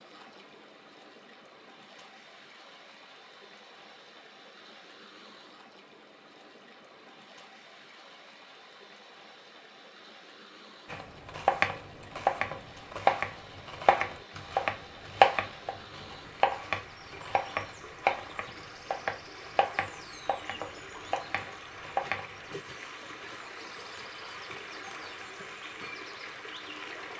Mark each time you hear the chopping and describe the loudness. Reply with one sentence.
The chopping can be heard from 10.9 to 22.3 s, getting quieter.